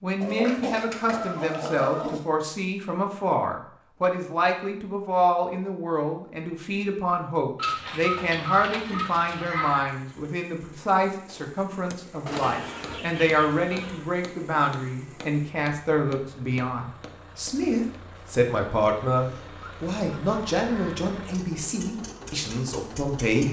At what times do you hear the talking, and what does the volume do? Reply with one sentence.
The talking can be heard from 0.0 to 23.4 s, at a steady volume.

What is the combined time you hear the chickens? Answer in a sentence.
The chickens can be heard for 8 seconds in total.